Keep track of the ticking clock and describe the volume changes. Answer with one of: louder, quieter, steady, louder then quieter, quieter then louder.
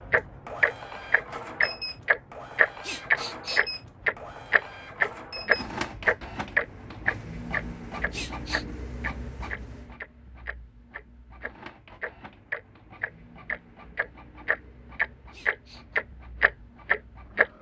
quieter then louder.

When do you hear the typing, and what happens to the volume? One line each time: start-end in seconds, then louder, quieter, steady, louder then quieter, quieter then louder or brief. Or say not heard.
not heard.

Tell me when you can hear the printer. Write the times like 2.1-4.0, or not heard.
0.0-17.5.